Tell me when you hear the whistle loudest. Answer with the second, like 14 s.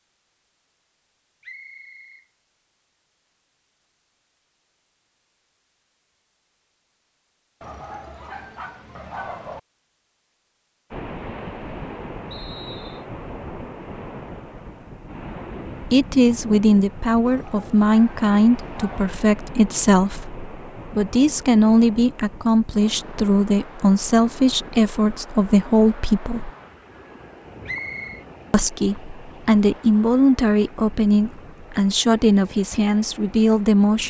28 s.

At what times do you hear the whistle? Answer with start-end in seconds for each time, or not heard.
1.4-2.2, 12.3-13.1, 27.6-28.2.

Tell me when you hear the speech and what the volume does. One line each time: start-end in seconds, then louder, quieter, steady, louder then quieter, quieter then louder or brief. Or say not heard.
15.8-26.5 steady
28.5-34.0 steady.